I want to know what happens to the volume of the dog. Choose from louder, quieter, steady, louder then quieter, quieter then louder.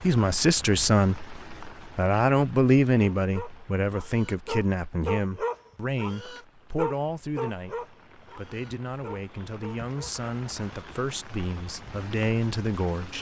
louder then quieter.